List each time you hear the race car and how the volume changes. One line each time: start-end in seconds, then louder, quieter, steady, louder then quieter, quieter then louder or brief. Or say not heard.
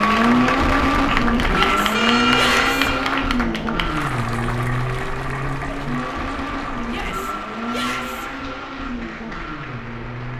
0.0-10.3 quieter.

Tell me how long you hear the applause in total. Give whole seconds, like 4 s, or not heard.
10 s.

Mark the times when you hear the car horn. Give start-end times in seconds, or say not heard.
1.9-3.1.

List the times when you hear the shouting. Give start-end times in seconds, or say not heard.
1.5-2.8, 6.8-8.2.